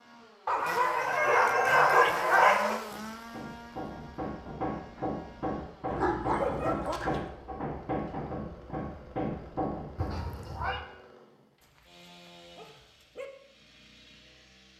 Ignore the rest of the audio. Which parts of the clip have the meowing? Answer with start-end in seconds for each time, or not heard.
0.6-2.1, 6.0-7.2, 9.9-10.8.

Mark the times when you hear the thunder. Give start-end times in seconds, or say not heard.
not heard.